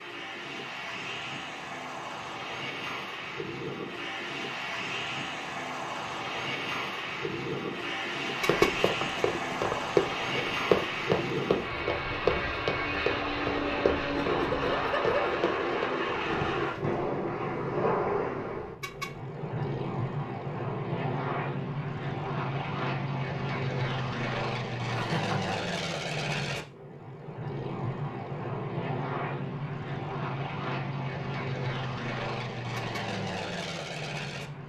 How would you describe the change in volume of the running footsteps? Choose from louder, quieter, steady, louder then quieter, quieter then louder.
quieter.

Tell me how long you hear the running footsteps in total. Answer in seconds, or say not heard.
9 s.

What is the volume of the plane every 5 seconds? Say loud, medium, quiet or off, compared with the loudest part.
medium, loud, loud, loud, loud, loud, loud.